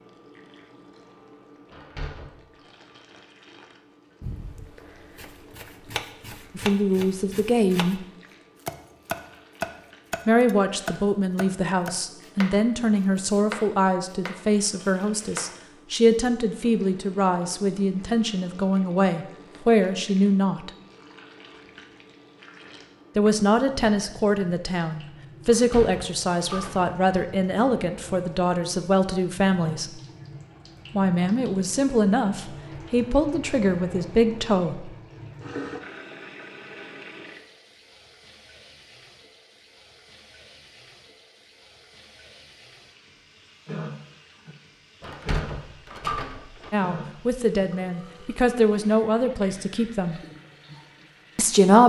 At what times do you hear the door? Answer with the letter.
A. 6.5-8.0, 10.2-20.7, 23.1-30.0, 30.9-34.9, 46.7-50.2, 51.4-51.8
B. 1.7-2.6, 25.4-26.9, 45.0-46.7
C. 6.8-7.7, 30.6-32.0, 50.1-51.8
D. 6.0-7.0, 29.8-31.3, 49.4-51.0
B.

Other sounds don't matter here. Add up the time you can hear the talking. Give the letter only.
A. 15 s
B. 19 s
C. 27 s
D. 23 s
C.